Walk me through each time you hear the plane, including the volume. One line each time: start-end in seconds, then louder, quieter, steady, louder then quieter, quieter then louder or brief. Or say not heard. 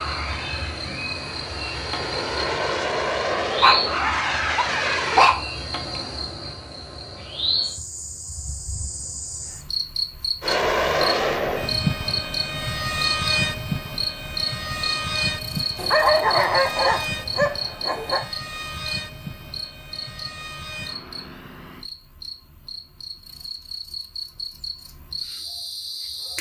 0.0-5.3 louder
10.4-21.9 quieter.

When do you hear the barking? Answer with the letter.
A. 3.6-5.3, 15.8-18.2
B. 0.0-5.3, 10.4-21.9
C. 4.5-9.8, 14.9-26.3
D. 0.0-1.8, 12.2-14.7
A.